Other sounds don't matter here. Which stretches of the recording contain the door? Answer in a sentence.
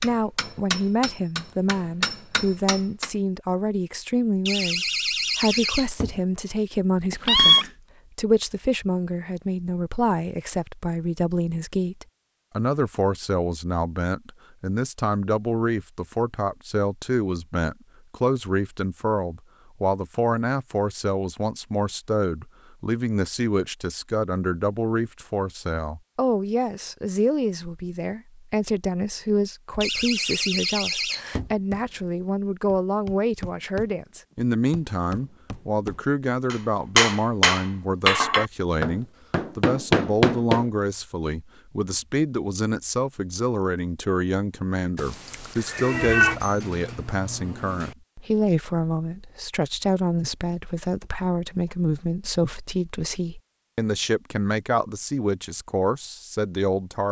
You can hear the door from 4.5 to 6.2 s, from 29.8 to 31.6 s and from 46.0 to 48.0 s.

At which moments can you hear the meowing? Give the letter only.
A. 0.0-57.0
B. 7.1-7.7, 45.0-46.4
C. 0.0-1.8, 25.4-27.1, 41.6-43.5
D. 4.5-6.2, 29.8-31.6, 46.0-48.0
B.